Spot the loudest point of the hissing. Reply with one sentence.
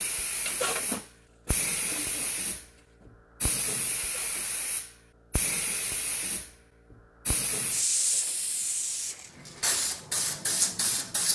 The volume of the hissing peaks at 10 seconds.